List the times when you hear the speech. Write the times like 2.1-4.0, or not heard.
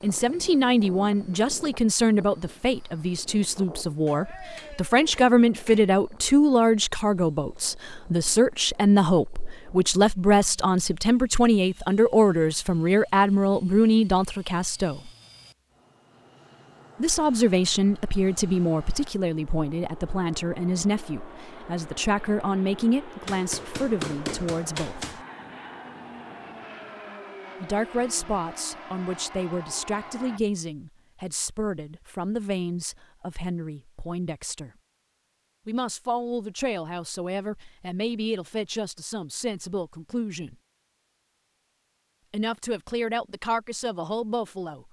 0.0-15.1, 17.0-25.1, 27.6-34.7, 35.6-40.5, 42.3-44.8.